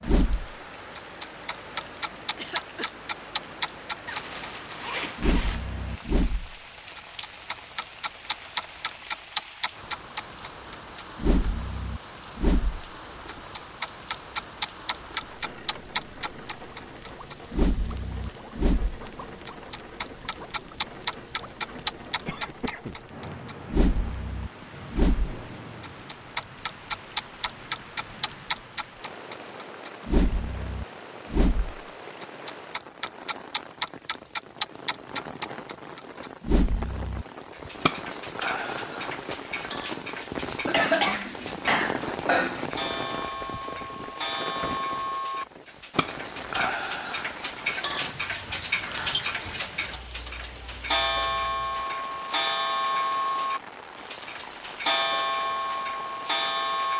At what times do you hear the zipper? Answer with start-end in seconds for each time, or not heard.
4.0-5.7.